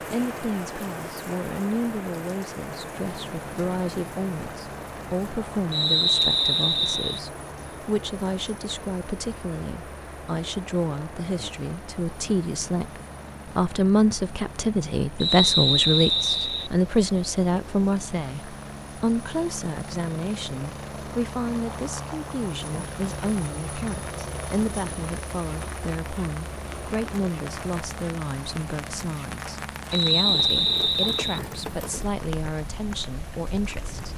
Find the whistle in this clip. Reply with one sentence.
The whistle can be heard from 5.7 to 7.2 s, from 15.2 to 16.7 s and from 29.9 to 31.4 s.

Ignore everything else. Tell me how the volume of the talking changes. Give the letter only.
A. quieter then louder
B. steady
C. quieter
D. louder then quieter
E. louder
D.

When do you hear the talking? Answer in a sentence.
You can hear the talking from 0.0 to 34.1 s.